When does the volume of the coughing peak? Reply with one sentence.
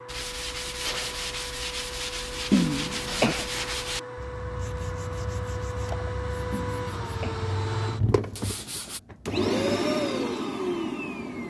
The loudest moment of the coughing is at 3 seconds.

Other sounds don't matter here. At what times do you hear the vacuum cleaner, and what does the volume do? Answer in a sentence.
You can hear the vacuum cleaner from 0.0 to 11.4 s, getting louder.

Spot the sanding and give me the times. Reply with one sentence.
You can hear the sanding from 0.1 to 9.0 s.